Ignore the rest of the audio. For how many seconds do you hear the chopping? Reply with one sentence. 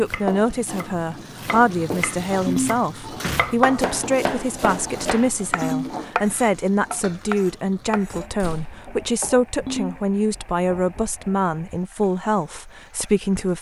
The chopping can be heard for 8 seconds in total.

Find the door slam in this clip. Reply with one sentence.
The door slam can be heard from 2.4 to 3.5 s and from 8.3 to 8.8 s.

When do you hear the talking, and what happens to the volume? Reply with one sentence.
The talking can be heard from 0.0 to 13.5 s, at a steady volume.